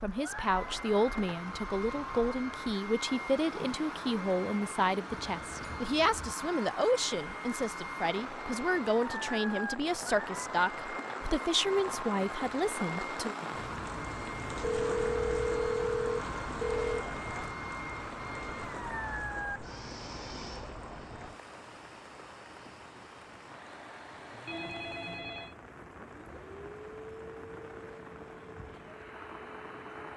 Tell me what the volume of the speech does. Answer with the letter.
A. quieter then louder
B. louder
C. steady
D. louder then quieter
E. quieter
C.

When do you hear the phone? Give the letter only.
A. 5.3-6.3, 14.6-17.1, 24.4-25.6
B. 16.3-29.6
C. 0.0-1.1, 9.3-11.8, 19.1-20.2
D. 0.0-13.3
A.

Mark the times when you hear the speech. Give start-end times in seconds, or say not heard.
0.0-13.3.